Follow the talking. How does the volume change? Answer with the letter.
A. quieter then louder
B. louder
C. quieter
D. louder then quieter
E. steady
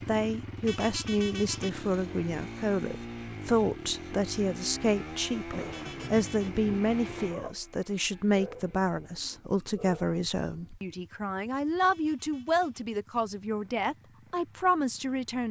E.